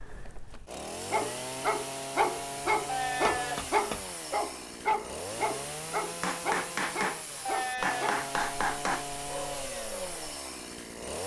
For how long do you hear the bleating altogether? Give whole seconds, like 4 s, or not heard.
2 s.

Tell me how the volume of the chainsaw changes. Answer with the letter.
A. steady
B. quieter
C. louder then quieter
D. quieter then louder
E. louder
A.